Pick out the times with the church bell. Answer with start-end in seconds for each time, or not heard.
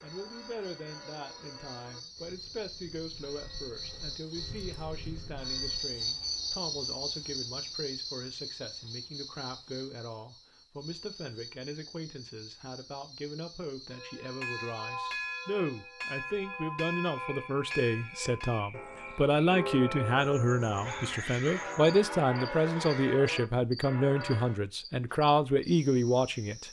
0.0-5.9, 13.9-24.6.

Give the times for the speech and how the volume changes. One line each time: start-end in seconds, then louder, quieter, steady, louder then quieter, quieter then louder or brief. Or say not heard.
0.0-26.6 louder.